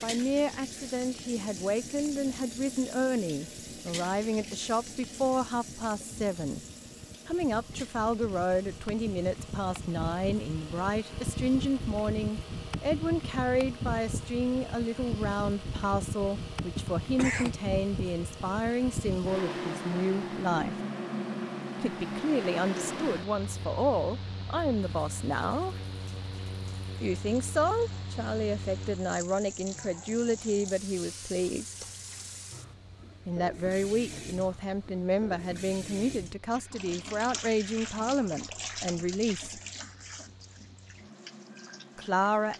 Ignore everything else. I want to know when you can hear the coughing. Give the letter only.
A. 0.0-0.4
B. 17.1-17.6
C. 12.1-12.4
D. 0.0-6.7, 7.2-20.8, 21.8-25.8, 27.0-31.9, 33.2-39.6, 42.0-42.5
B.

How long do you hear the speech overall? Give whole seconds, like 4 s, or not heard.
36 s.